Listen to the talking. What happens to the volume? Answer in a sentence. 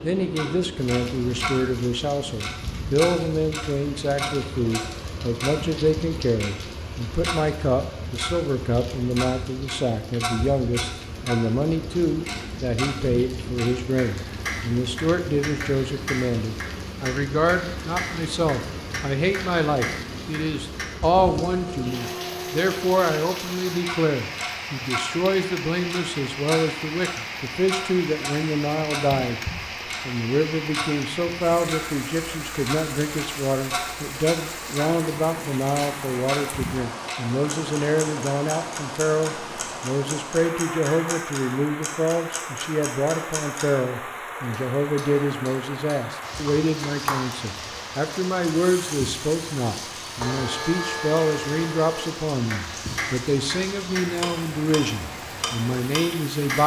The loudness of the talking stays about the same.